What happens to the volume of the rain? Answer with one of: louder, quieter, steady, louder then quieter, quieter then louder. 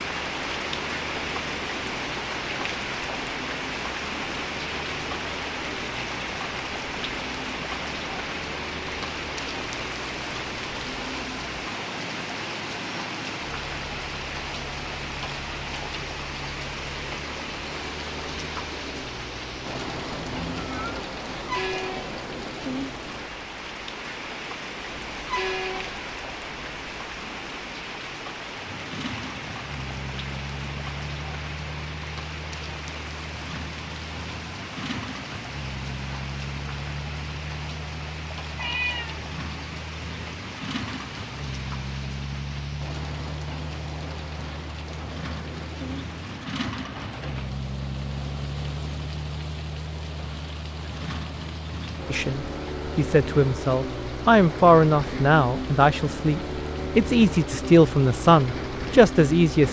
quieter.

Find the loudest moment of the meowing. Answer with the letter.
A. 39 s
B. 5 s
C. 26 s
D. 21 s
A.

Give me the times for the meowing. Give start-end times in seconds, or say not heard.
20.2-21.0, 38.3-39.2.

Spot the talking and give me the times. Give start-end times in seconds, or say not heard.
52.1-59.6.